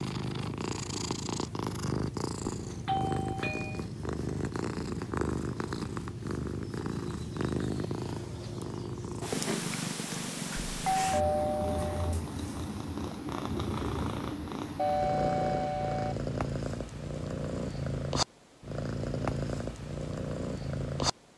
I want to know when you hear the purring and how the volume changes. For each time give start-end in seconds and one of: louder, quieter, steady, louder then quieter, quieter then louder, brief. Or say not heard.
0.0-21.3 steady.